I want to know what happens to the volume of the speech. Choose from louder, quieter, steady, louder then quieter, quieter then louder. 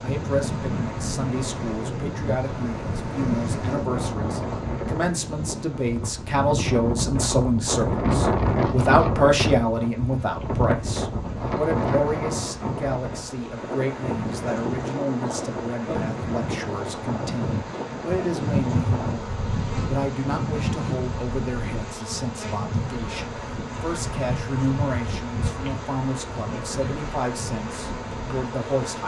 louder then quieter.